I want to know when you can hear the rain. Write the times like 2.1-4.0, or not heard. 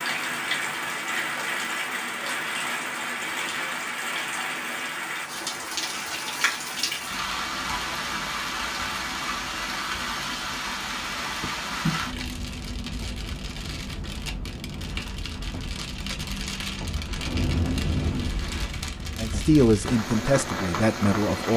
0.0-21.5.